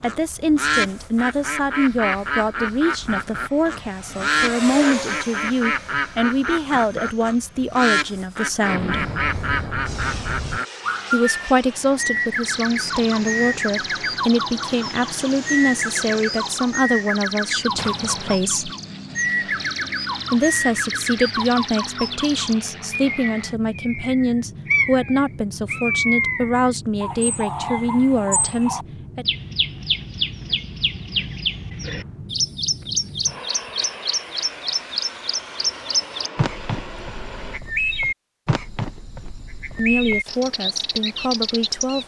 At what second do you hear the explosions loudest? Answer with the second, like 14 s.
9 s.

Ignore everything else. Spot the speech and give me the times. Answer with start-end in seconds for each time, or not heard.
0.0-9.0, 11.1-18.7, 20.3-29.2, 39.8-42.0.